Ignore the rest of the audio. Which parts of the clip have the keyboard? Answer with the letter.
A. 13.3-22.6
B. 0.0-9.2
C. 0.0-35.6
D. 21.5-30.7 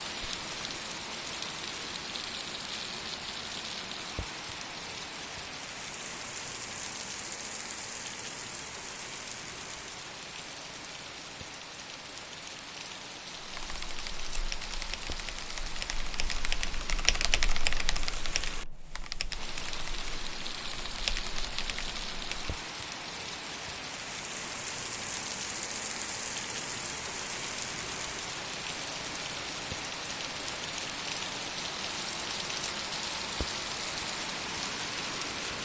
A.